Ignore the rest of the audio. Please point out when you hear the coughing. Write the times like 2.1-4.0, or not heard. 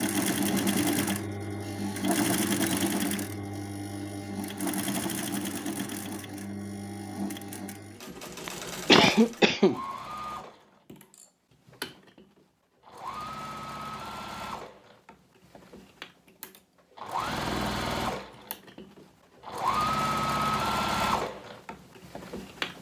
8.4-9.8.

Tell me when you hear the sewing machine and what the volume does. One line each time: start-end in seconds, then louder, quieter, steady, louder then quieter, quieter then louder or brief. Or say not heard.
0.0-22.7 quieter then louder.